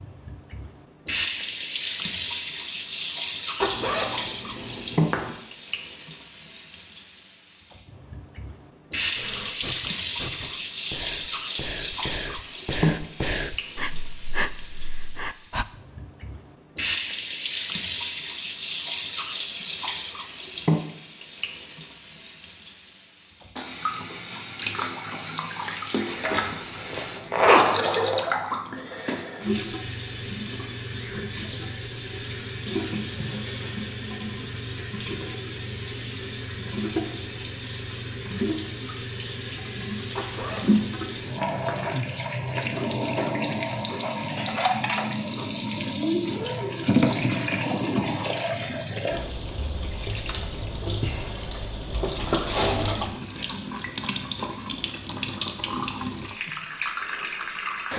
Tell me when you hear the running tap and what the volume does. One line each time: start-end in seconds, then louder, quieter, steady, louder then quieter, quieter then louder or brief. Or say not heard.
0.0-57.9 steady.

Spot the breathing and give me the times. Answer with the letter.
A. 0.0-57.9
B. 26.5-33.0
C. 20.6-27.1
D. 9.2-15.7
D.